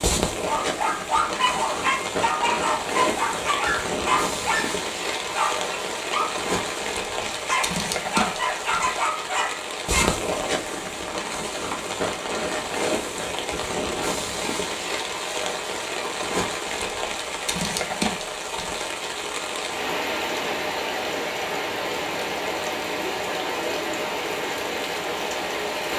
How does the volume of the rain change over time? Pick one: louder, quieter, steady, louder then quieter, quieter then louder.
steady.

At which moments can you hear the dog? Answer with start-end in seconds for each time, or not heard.
0.5-10.2.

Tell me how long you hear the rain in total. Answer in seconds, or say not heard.
26 s.